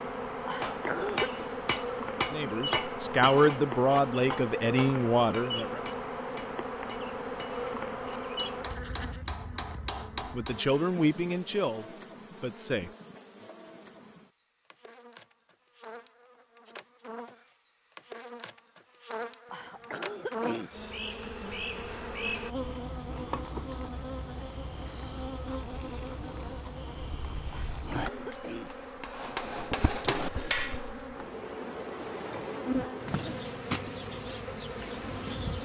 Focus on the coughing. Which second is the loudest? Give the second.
1 s.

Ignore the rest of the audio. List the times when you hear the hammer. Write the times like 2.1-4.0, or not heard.
0.6-10.7, 28.1-30.9.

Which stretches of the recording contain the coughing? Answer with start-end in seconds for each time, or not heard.
0.5-1.4, 19.5-20.8, 27.5-28.8.